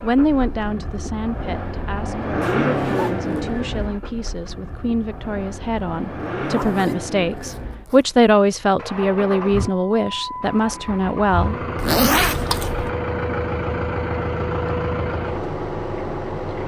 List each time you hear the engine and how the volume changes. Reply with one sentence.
You can hear the engine from 0.0 to 16.6 s, getting quieter then louder.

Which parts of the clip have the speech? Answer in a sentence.
The speech can be heard from 0.0 to 11.6 s.